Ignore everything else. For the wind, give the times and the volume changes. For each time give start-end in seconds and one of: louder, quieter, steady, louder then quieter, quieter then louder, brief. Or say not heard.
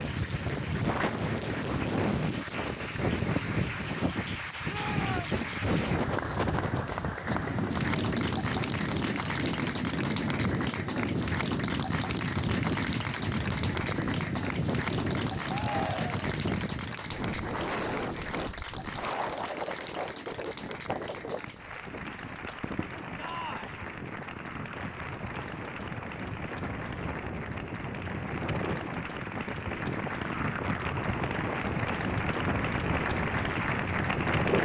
0.0-34.6 quieter then louder.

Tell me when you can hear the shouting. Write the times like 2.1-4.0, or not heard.
4.7-5.4, 15.4-16.3, 23.1-23.8.